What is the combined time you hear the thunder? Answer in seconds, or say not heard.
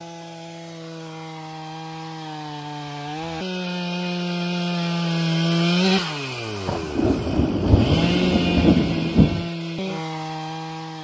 3 s.